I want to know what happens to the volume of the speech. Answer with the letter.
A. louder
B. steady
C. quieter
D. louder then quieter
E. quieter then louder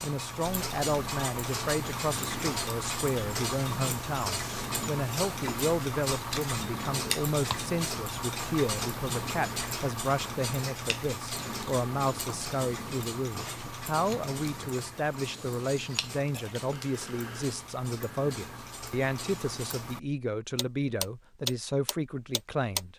B.